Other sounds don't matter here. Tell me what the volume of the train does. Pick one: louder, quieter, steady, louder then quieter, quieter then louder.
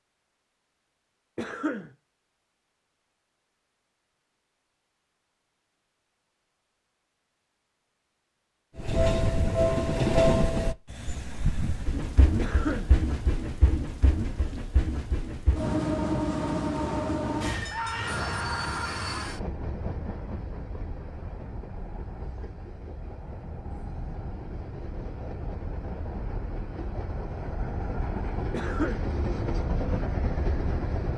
quieter then louder.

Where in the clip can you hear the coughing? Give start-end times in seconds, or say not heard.
1.4-1.9, 12.3-12.9, 28.5-29.1.